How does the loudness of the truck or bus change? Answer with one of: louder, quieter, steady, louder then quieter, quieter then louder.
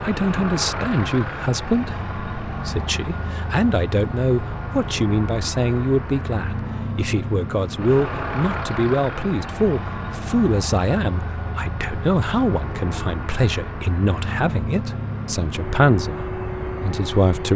steady.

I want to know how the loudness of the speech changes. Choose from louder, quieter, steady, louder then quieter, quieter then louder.
steady.